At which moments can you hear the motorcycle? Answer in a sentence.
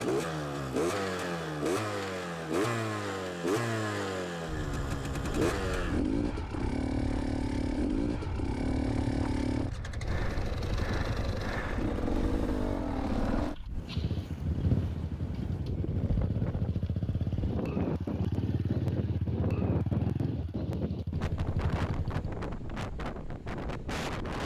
You can hear the motorcycle from 0.0 to 22.3 s.